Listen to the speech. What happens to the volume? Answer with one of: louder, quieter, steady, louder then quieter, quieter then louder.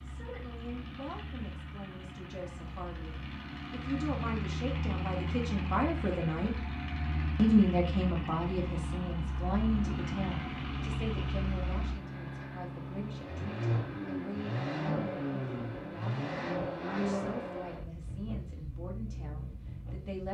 louder then quieter.